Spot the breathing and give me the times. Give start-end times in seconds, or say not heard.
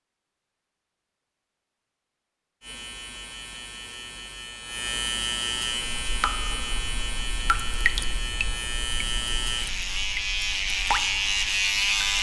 not heard.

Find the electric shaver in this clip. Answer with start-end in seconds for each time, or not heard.
2.6-12.1.